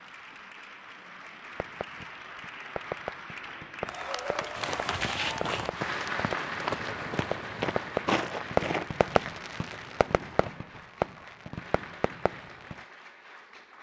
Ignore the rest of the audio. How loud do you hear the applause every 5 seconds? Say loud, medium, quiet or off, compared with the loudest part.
loud, loud, medium.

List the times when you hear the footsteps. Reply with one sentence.
You can hear the footsteps from 4.5 to 10.8 s.